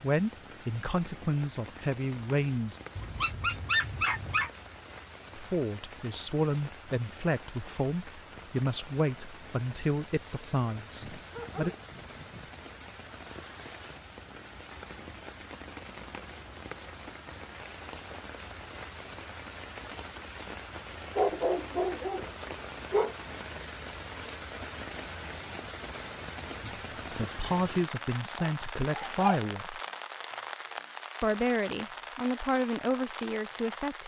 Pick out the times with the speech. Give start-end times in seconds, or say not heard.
0.0-2.8, 5.3-11.7, 26.6-29.8, 31.2-34.0.